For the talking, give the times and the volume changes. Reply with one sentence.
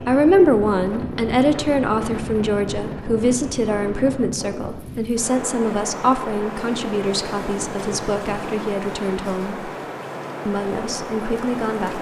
You can hear the talking from 0.1 to 9.7 s, getting quieter; and briefly from 10.4 to 11.9 s.